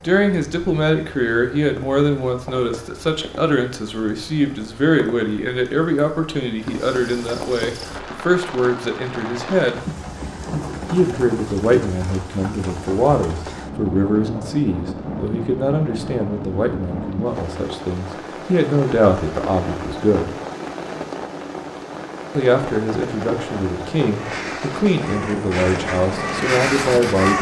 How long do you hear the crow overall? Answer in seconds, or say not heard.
3 s.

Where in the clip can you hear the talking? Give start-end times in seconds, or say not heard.
0.0-9.8, 10.8-20.4, 22.4-27.3.